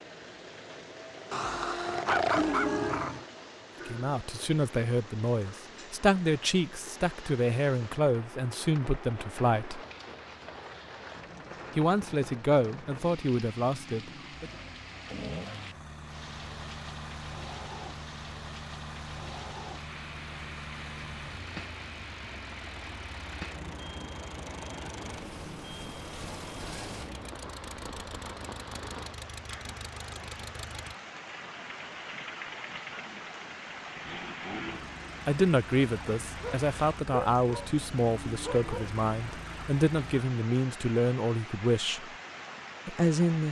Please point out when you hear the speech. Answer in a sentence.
You can hear the speech from 3.9 to 9.8 s, from 11.8 to 14.5 s, from 35.2 to 42.1 s and from 42.9 to 43.4 s.